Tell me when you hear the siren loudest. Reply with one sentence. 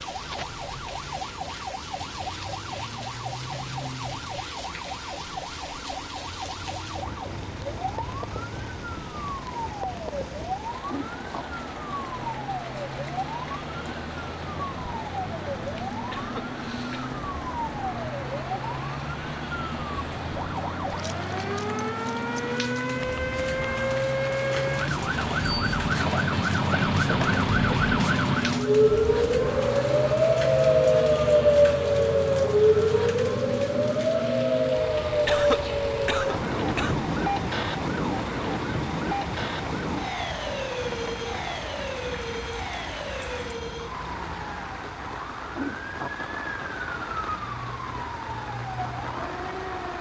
The volume of the siren peaks at 31 seconds.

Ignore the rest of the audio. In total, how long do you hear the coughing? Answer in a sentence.
The coughing can be heard for 3 seconds in total.